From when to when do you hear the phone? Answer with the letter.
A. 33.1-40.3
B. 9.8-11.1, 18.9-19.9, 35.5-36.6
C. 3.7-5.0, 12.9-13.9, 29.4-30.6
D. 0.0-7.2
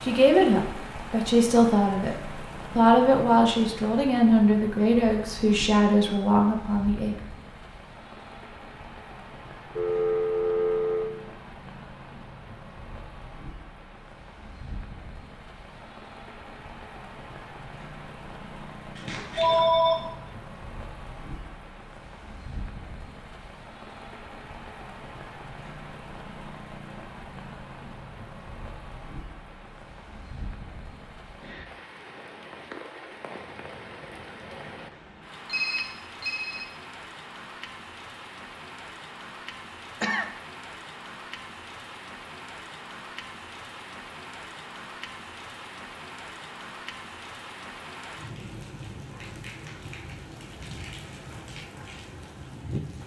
B.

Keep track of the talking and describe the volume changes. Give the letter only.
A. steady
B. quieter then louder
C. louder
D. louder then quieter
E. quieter
A.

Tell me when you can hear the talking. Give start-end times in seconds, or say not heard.
0.0-7.2.